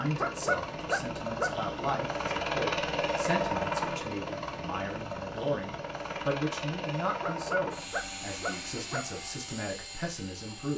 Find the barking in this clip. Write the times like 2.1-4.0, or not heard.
0.2-1.5, 7.2-9.1.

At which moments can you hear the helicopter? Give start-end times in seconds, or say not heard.
0.0-10.7.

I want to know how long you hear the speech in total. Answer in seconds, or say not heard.
11 s.